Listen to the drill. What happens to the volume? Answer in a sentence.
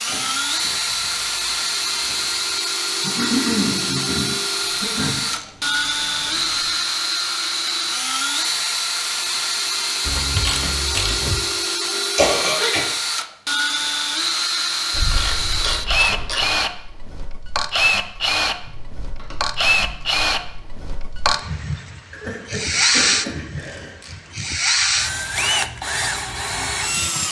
The volume of the drill stays about the same.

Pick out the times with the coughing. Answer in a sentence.
You can hear the coughing from 3.0 to 5.2 s, from 12.2 to 12.8 s and from 22.1 to 23.9 s.